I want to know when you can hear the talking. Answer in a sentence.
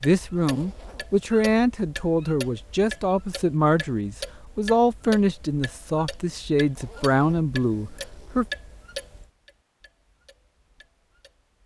You can hear the talking from 0.0 to 8.4 s.